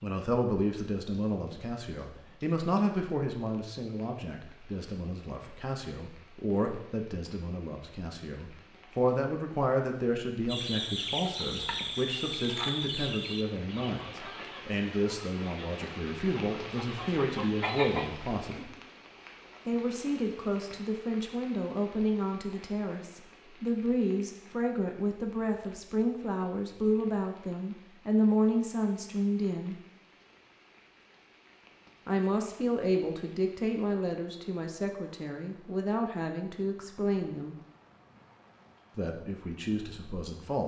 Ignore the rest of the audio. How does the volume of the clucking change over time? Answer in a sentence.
The loudness of the clucking goes down, then up.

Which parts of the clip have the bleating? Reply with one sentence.
The bleating can't be heard in this clip.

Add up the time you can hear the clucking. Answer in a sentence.
The clucking can be heard for 8 seconds in total.